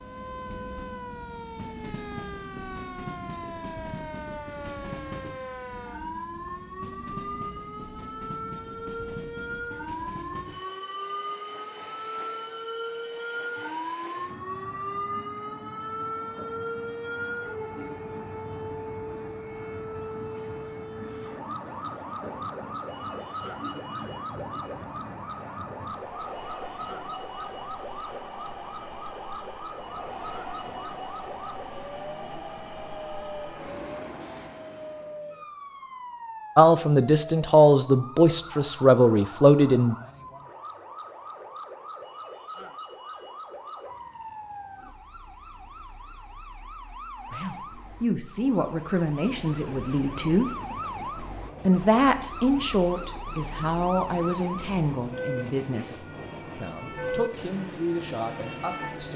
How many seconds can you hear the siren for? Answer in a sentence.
The siren can be heard for 59 seconds in total.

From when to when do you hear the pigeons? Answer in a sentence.
You can't hear the pigeons here.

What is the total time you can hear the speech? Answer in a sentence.
The speech can be heard for 14 seconds in total.